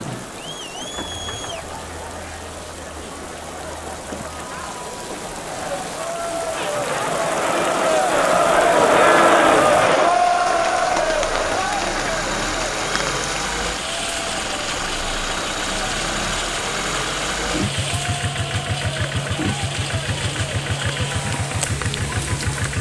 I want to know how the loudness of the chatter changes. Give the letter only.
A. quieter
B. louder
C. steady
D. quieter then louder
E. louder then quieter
E.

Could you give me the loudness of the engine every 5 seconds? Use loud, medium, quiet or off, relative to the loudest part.
quiet, medium, loud, loud, loud.